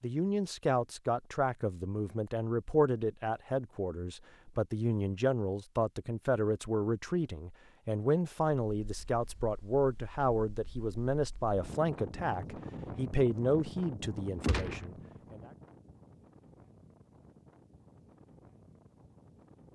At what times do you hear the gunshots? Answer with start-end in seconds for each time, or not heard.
14.4-14.8.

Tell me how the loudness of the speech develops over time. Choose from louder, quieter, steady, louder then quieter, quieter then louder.
steady.